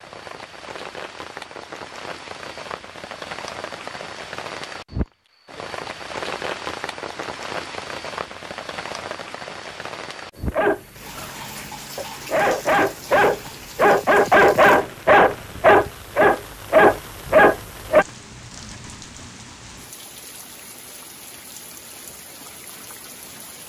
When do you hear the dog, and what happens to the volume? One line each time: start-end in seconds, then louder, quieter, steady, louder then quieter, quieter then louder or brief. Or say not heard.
10.3-18.1 louder.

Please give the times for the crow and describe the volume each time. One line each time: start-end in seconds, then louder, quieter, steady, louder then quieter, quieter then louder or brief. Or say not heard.
not heard.